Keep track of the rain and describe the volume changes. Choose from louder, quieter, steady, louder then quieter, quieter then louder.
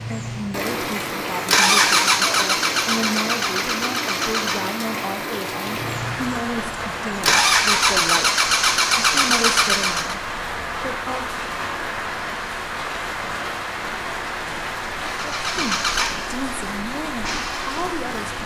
steady.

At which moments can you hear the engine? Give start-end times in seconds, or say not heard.
0.0-10.2, 15.0-18.4.